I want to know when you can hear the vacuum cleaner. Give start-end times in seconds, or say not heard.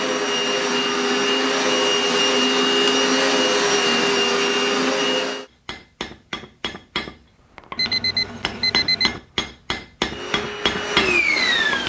0.0-5.5, 10.1-11.8.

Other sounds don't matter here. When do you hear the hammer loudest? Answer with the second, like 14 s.
11 s.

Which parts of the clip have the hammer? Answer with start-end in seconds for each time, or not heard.
5.7-11.8.